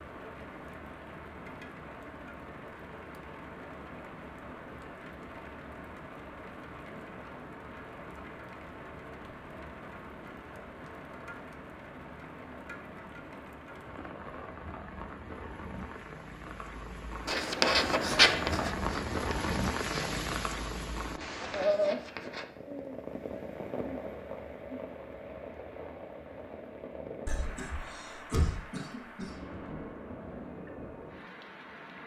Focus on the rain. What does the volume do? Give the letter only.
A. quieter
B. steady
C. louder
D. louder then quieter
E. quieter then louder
D.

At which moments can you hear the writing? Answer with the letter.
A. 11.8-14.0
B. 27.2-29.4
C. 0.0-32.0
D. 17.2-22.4
D.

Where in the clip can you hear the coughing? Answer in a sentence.
The coughing can be heard from 27.2 to 29.4 s.